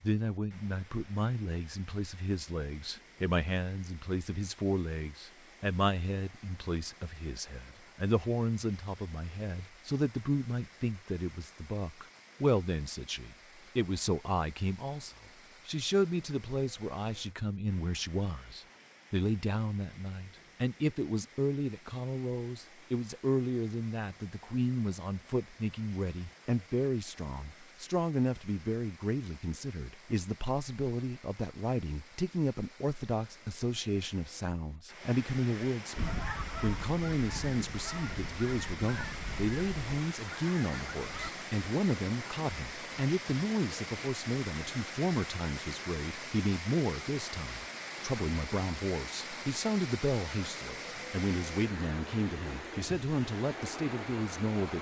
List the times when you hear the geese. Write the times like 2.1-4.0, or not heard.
36.0-41.3.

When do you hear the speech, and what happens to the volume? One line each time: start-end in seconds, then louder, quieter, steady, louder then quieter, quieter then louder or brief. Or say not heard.
0.0-54.7 steady.